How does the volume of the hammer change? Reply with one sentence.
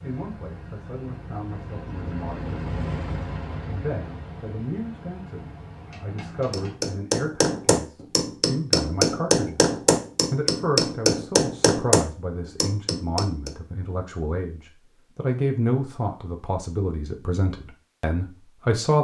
The volume of the hammer stays about the same.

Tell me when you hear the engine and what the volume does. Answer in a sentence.
You can hear the engine from 0.0 to 6.8 s, getting louder then quieter.